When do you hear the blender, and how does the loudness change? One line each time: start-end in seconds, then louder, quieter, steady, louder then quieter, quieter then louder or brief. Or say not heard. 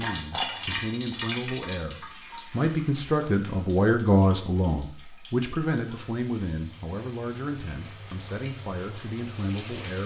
not heard.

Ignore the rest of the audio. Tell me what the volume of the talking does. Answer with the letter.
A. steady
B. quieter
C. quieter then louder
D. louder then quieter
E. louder
D.